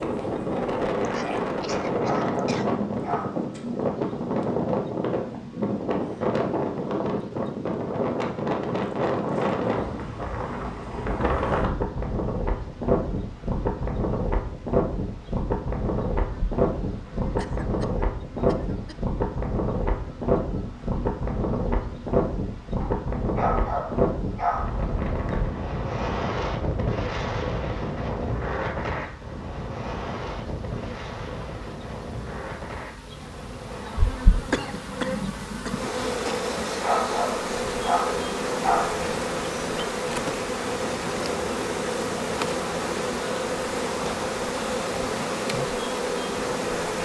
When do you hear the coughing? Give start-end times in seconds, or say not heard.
1.0-2.7, 17.4-18.9, 34.5-35.8.